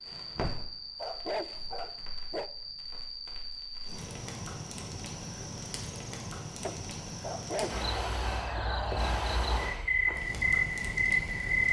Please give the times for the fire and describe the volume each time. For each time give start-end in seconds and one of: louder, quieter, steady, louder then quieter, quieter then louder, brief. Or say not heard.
0.0-11.6 louder.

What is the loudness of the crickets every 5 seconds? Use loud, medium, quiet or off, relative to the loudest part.
quiet, medium, loud.